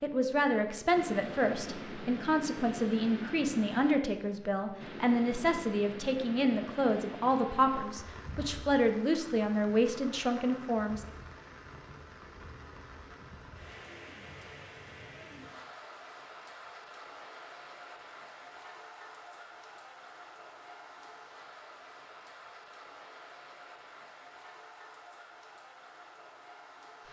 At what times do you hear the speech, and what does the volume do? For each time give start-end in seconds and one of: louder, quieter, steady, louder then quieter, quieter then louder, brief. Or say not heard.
0.0-11.1 steady.